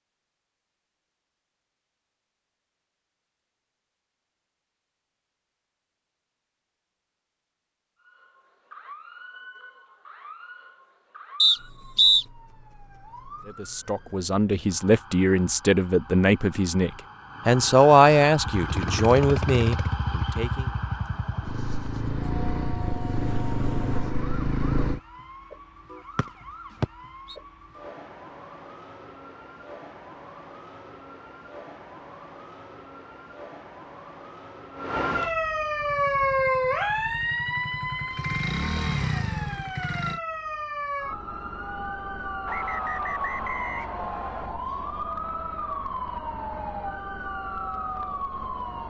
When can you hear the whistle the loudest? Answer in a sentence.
The volume of the whistle peaks at 12 seconds.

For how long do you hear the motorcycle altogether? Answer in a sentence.
You can hear the motorcycle for 11 seconds altogether.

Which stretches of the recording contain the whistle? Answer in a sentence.
You can hear the whistle from 11.4 to 12.2 s, from 26.1 to 27.4 s and from 42.5 to 44.5 s.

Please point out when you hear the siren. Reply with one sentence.
You can hear the siren from 8.0 to 48.8 s.